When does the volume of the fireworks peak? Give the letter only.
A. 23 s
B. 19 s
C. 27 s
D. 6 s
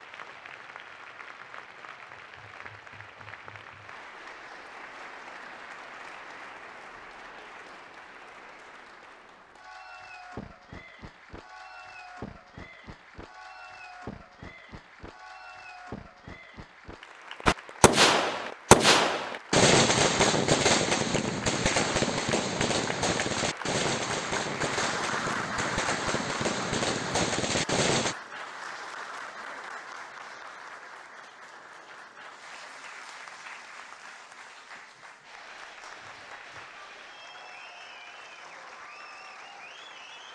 B.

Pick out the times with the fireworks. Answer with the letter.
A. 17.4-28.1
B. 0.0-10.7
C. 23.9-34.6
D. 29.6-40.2
A.